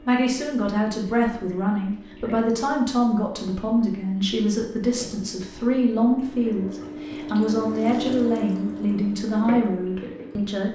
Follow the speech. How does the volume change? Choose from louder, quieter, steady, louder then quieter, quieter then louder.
steady.